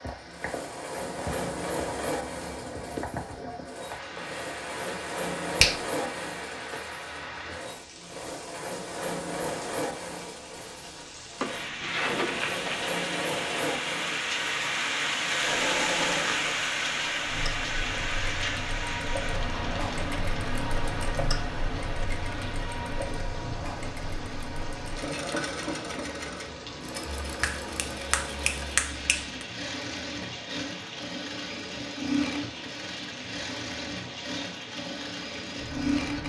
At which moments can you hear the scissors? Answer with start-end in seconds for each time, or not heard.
not heard.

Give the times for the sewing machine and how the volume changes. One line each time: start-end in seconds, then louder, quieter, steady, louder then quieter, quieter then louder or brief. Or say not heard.
0.0-36.2 steady.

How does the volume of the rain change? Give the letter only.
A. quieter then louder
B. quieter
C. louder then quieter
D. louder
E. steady
C.